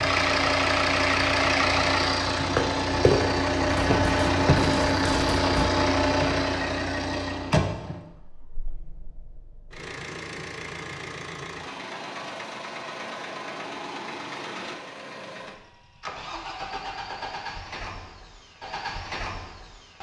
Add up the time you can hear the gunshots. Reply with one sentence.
The gunshots can be heard for 2 seconds in total.